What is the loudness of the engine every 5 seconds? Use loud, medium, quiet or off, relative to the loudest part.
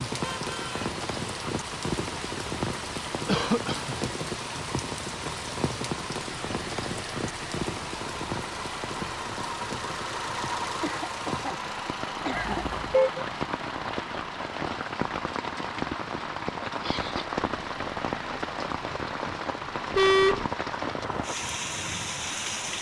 medium, loud, loud, medium, medium.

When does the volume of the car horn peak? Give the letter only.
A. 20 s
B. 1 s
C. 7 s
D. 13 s
A.